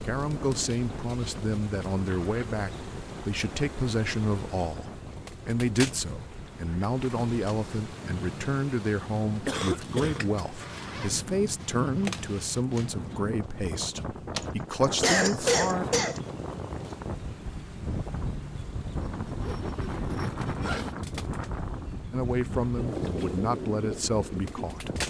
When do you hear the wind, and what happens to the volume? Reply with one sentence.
The wind can be heard from 0.0 to 25.0 s, getting louder.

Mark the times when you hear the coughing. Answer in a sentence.
The coughing can be heard from 9.4 to 10.2 s and from 14.4 to 16.2 s.